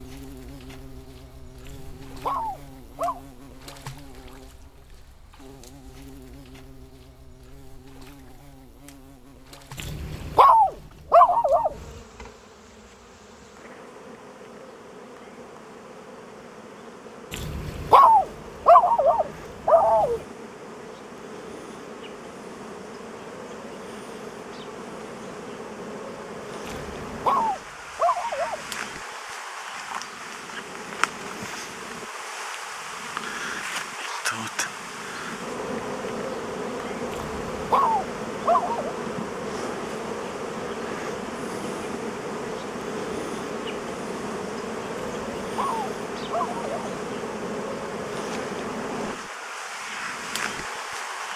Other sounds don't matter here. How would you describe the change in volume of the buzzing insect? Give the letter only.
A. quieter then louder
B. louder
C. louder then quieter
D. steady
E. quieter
B.